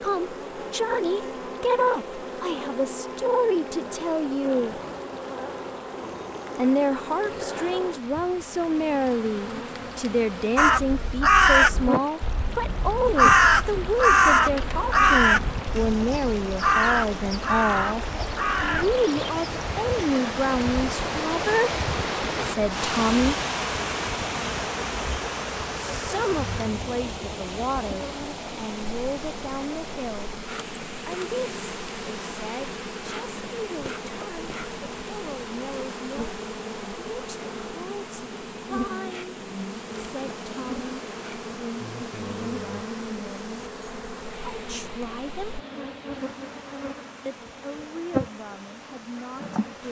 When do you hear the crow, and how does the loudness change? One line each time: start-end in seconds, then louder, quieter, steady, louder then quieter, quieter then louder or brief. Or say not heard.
10.6-20.1 quieter.